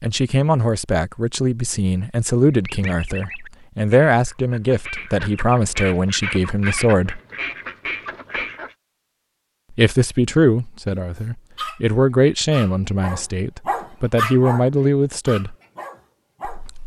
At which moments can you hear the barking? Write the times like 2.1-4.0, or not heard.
10.9-16.6.